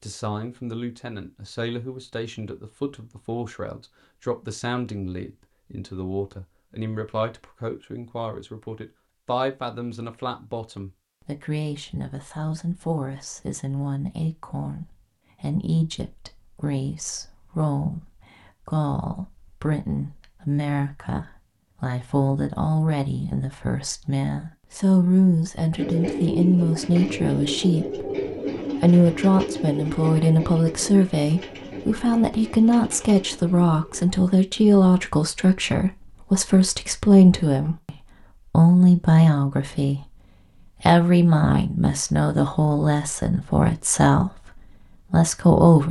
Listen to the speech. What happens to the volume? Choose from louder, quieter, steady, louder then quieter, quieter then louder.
louder.